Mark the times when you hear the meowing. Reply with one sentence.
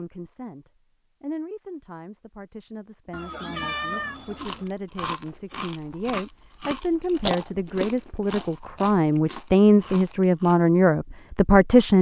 You can hear the meowing from 3.1 to 4.7 s.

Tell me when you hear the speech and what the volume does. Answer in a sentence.
The speech can be heard from 0.0 to 11.9 s, getting louder.